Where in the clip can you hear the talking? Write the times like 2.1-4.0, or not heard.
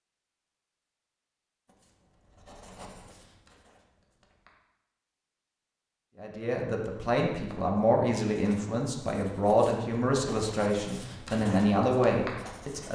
6.2-12.8.